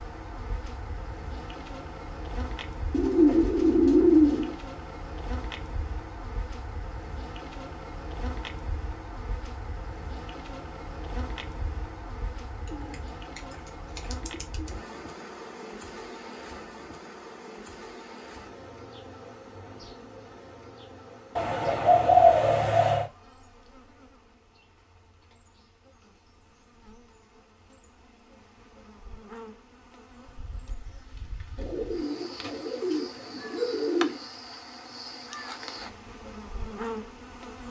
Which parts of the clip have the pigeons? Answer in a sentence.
The pigeons can be heard from 2.9 to 4.5 s, from 12.7 to 14.7 s, from 21.4 to 23.1 s and from 31.6 to 34.2 s.